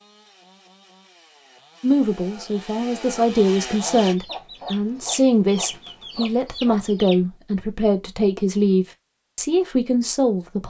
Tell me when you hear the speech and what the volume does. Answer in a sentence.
The speech can be heard from 1.8 to 10.6 s, at a steady volume.